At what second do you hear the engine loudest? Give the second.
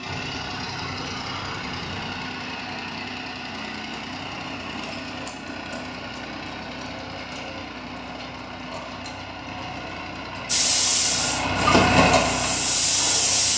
12 s.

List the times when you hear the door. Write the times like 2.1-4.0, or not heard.
0.1-2.2.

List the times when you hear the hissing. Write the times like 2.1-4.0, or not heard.
10.4-13.5.